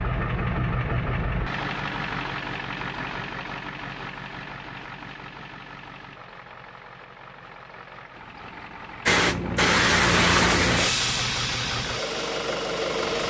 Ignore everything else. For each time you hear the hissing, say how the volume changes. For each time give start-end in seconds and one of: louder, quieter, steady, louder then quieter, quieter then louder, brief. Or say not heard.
9.1-13.2 quieter.